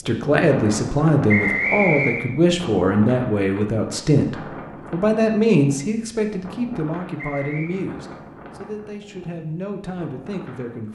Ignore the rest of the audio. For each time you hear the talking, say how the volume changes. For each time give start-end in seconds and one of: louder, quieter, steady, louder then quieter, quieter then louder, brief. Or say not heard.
0.0-10.9 quieter.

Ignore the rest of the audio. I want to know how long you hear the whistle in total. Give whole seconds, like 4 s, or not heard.
2 s.